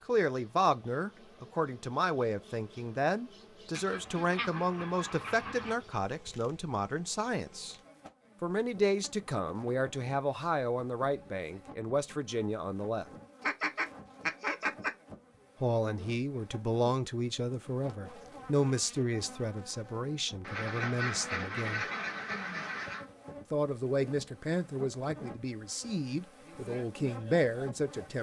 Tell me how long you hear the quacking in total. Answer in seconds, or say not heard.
6 s.